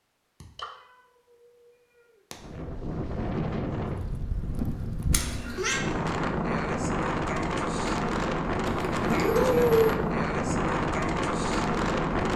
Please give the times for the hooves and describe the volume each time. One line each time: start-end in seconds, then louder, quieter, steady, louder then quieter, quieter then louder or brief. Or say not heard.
not heard.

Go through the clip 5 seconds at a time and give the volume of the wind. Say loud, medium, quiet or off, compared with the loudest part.
medium, loud, loud.